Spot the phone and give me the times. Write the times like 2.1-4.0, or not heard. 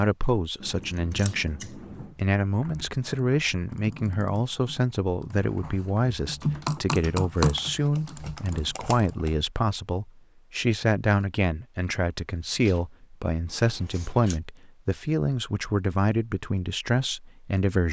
not heard.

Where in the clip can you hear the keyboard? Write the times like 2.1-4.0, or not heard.
1.8-9.3.